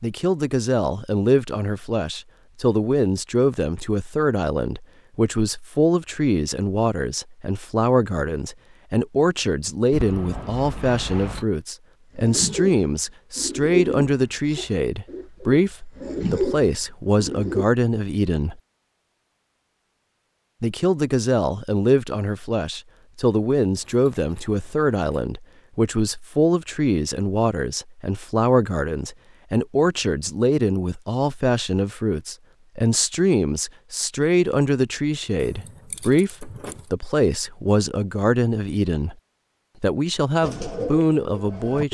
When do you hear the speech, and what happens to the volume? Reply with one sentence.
You can hear the speech from 0.0 to 18.6 s, at a steady volume; from 20.6 to 39.1 s, at a steady volume; and briefly from 39.8 to 41.8 s.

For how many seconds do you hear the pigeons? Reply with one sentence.
The pigeons can be heard for 7 seconds in total.